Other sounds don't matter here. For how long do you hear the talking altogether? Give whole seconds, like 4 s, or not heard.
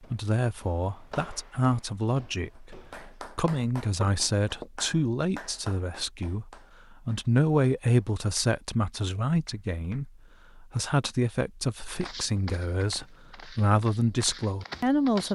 15 s.